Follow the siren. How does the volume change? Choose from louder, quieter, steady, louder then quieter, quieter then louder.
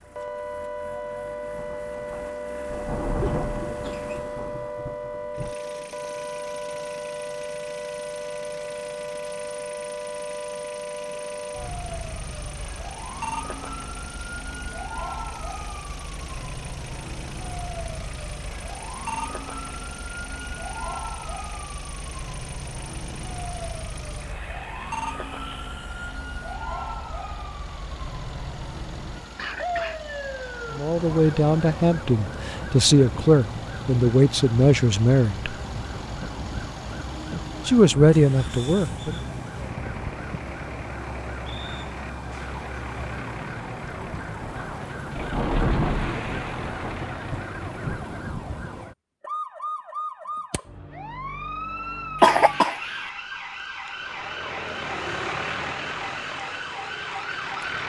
steady.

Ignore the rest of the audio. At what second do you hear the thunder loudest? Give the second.
46 s.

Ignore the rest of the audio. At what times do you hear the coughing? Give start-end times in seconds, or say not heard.
3.2-4.2, 29.4-30.0, 52.2-53.1.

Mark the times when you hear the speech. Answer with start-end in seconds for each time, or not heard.
30.7-35.5, 37.6-39.1.